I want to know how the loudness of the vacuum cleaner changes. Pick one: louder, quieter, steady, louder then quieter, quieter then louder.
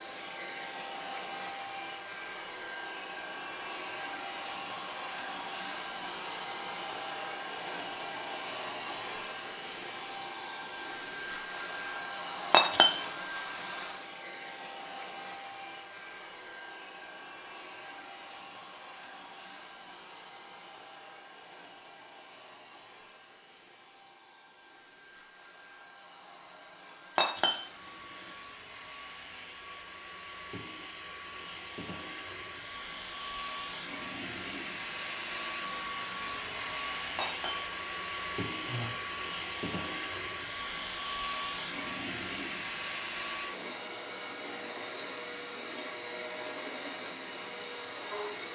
quieter then louder.